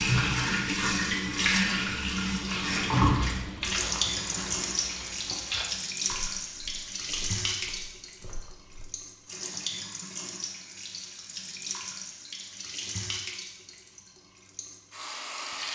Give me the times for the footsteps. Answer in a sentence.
You can hear the footsteps from 2.4 to 8.8 s.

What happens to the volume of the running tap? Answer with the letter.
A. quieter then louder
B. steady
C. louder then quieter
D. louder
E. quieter
E.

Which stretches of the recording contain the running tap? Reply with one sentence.
The running tap can be heard from 0.0 to 15.7 s.